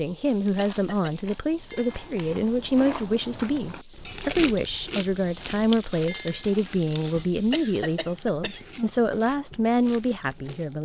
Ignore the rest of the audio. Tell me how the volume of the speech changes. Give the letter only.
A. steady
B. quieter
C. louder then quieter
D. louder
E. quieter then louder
A.